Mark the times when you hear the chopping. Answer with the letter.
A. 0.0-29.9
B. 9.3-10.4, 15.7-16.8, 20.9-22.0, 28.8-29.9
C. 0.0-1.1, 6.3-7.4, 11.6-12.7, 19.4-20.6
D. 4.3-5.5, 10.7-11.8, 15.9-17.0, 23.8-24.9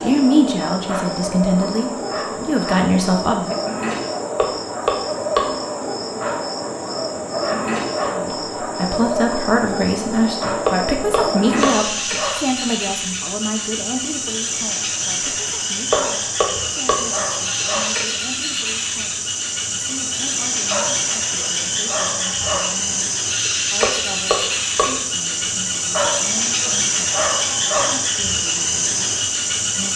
D.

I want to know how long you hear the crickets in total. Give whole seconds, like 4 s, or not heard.
30 s.